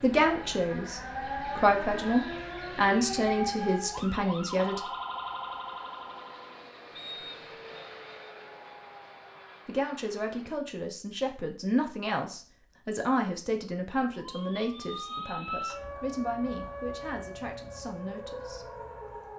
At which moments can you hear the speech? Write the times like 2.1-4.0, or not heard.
0.0-4.8, 9.7-18.7.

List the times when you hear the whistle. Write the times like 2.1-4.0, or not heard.
7.0-7.9.